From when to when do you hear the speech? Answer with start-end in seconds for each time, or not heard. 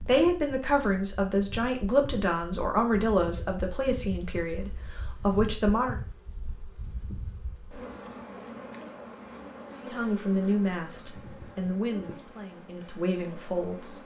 0.0-6.0, 9.8-13.9.